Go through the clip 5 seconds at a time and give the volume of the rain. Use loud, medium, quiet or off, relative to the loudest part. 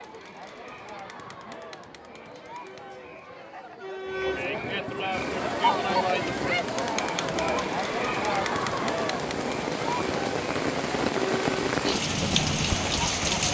off, medium, loud.